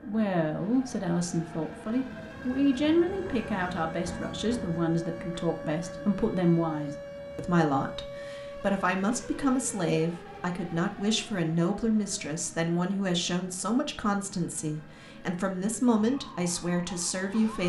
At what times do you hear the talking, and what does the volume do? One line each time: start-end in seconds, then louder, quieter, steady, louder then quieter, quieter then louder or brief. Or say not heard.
0.0-17.6 steady.